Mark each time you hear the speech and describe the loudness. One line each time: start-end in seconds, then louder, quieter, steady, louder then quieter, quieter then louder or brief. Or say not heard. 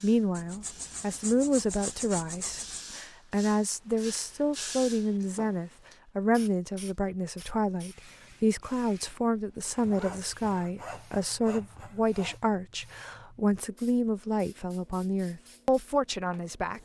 0.0-16.8 steady.